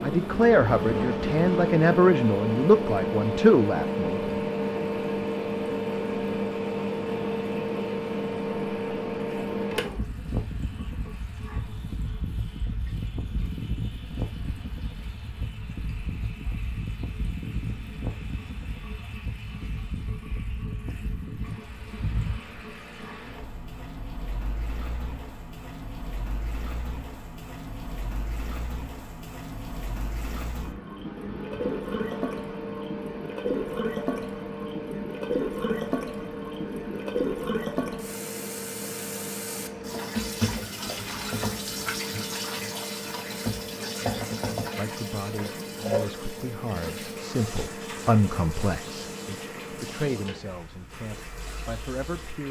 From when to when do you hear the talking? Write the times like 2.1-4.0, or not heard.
0.0-4.3, 44.8-52.4.